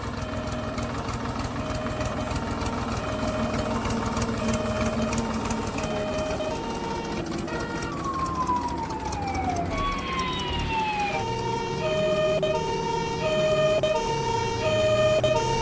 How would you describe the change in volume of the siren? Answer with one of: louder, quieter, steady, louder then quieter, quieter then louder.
louder.